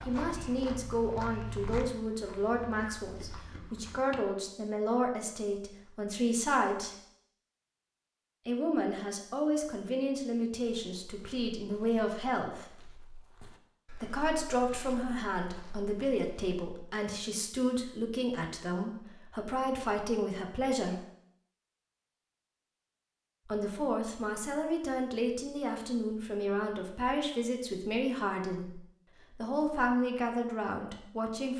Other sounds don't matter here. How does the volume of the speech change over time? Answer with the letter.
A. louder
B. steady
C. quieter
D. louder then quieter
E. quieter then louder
B.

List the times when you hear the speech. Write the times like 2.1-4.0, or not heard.
0.1-6.9, 8.4-12.7, 13.9-21.0, 23.4-31.5.